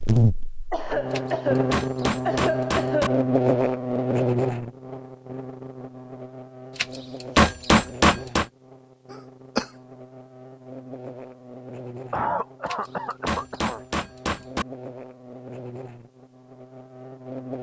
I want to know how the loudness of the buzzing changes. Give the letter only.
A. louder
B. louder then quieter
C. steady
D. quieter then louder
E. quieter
E.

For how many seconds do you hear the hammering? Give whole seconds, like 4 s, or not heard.
6 s.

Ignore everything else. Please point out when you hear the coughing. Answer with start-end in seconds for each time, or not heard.
0.7-3.2, 9.1-9.7, 12.1-13.8.